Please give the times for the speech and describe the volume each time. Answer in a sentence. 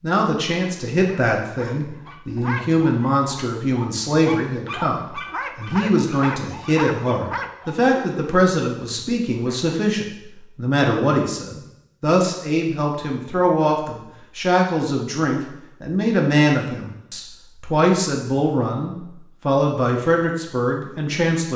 The speech can be heard from 0.0 to 21.5 s, at a steady volume.